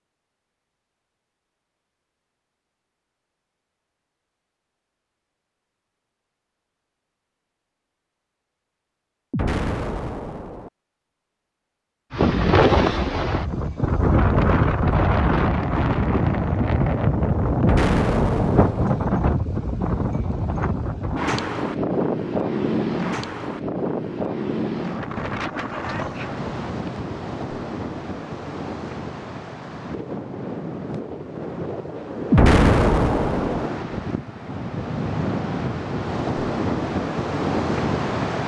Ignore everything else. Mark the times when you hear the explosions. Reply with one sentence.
You can hear the explosions from 9.3 to 10.7 s, from 17.6 to 19.0 s and from 32.3 to 33.7 s.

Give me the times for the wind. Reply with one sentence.
You can hear the wind from 12.1 to 38.4 s.